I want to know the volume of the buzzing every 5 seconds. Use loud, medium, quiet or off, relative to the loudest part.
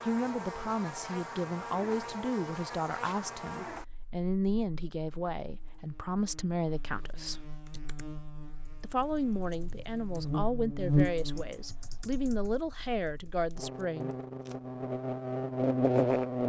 quiet, quiet, medium, loud.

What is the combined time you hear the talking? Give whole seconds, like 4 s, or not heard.
13 s.